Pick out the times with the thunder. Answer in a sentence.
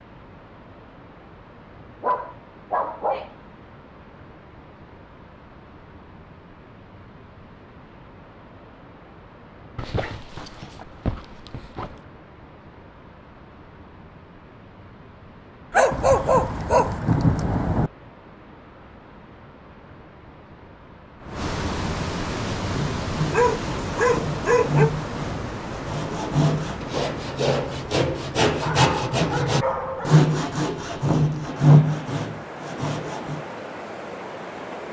The thunder can be heard from 15.9 to 17.9 s.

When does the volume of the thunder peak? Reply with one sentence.
The volume of the thunder peaks at 17 seconds.